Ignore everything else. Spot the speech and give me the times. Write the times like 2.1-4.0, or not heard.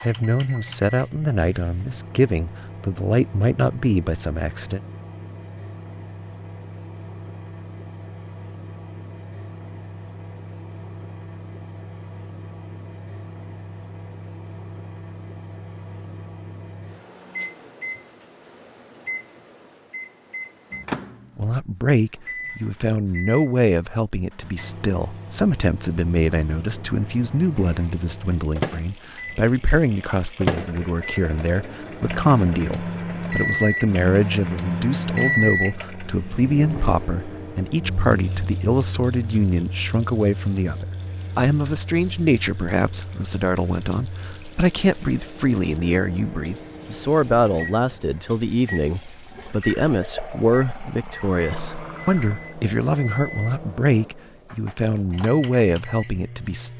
0.0-4.8, 21.4-56.7.